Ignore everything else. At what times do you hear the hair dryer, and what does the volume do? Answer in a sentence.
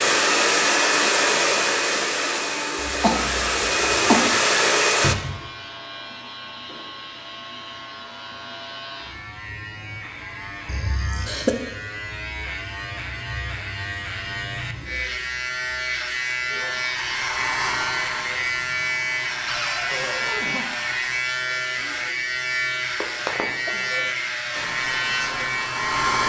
You can hear the hair dryer from 0.0 to 5.2 s, getting quieter then louder; from 16.6 to 21.2 s, getting quieter; and briefly from 24.5 to 26.2 s.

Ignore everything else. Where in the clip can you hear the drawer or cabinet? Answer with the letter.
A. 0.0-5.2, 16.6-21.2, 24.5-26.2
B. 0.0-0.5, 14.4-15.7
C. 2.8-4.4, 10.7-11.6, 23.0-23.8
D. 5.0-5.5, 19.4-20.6
D.